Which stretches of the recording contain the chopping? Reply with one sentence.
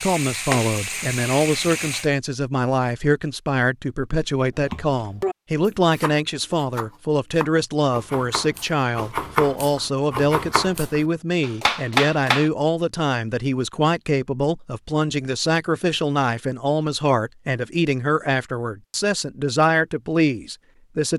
You can hear the chopping from 4.7 to 12.5 s.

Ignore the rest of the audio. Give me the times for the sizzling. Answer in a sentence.
The sizzling can be heard from 0.0 to 2.1 s.